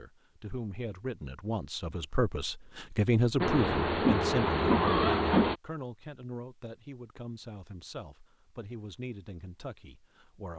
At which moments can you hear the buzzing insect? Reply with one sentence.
The buzzing insect can be heard from 3.4 to 5.5 s.